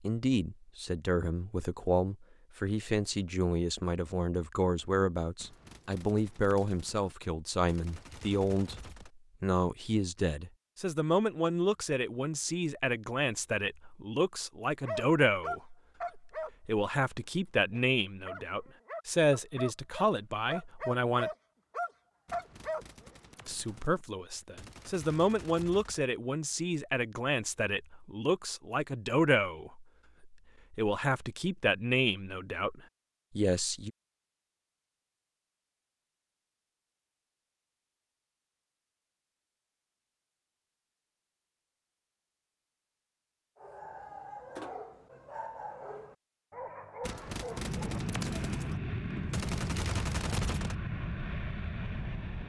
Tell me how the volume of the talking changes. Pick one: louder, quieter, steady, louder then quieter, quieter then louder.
steady.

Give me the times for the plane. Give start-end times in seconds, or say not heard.
47.5-52.4.